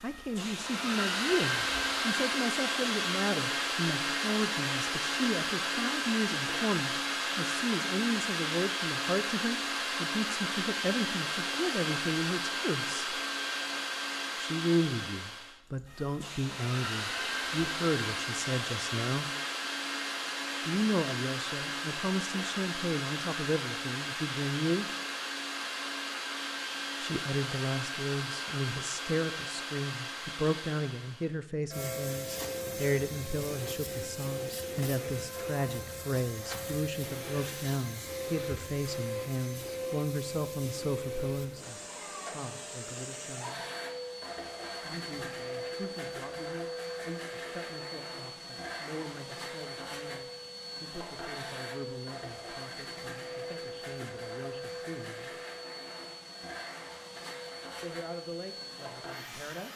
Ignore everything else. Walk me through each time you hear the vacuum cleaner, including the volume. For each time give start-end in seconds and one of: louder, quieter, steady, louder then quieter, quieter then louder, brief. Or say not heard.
0.0-59.7 quieter.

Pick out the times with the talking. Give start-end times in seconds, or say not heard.
0.0-13.2, 14.3-19.2, 20.6-24.9, 27.0-43.6, 44.8-55.4, 57.8-59.7.